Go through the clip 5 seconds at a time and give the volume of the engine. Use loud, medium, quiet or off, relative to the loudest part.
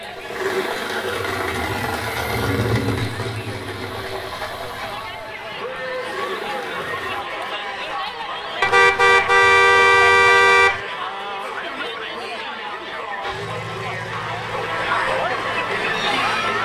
loud, medium, medium, quiet.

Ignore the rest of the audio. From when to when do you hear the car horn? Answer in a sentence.
The car horn can be heard from 8.6 to 10.8 s.